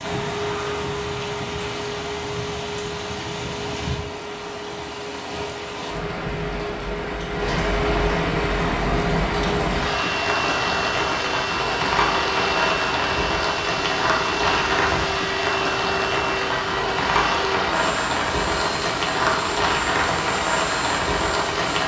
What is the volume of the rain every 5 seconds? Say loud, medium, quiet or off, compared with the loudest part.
medium, loud, loud, loud, loud.